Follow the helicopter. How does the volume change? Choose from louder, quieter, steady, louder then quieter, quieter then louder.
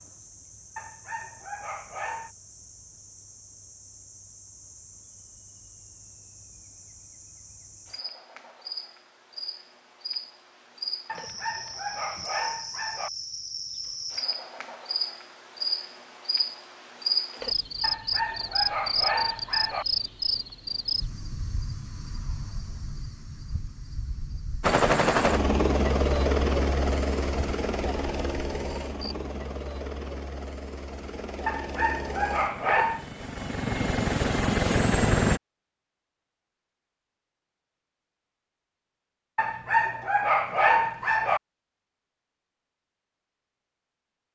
quieter then louder.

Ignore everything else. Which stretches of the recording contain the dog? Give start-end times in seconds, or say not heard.
0.8-2.3, 11.1-13.1, 17.8-19.9, 31.4-33.0, 39.4-41.4.